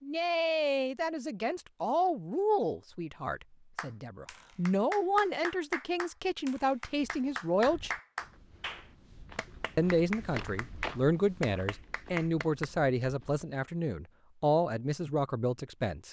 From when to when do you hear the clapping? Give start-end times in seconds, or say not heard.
3.8-12.7.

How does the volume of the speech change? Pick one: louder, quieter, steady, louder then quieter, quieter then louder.
steady.